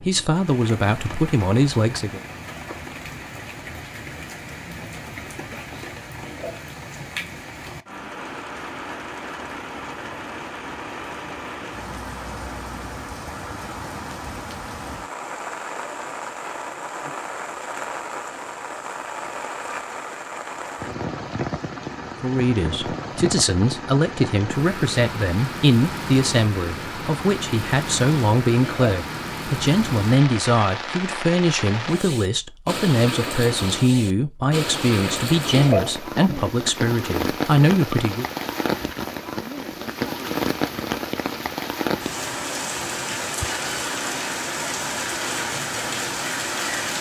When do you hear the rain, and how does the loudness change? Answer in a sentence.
You can hear the rain from 0.0 to 46.9 s, getting louder.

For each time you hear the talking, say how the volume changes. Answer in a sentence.
The talking can be heard briefly from 0.0 to 2.2 s; and from 22.2 to 38.2 s, at a steady volume.